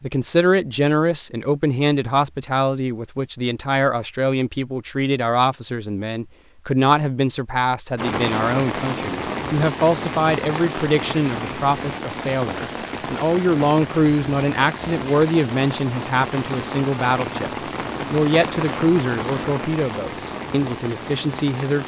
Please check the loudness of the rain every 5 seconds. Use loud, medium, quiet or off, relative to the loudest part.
off, loud, loud, loud, medium.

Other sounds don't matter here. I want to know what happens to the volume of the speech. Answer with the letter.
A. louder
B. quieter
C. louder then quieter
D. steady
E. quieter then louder
D.